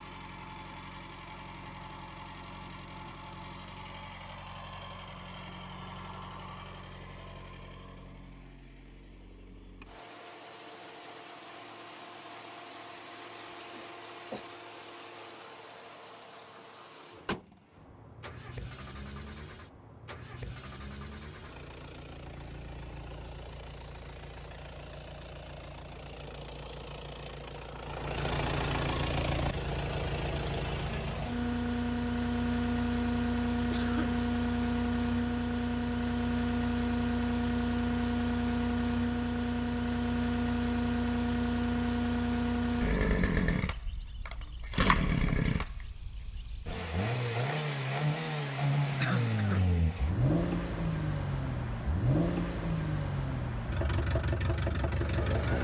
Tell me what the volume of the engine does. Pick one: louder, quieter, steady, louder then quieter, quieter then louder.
louder.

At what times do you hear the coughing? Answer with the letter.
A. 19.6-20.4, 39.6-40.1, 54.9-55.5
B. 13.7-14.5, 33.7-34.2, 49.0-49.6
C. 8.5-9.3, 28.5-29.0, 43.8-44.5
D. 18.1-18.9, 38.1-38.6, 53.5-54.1
B.